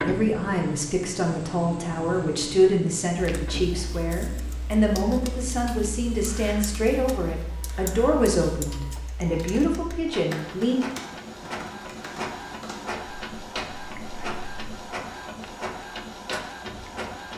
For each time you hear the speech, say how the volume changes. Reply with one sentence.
The speech can be heard from 0.0 to 10.8 s, at a steady volume.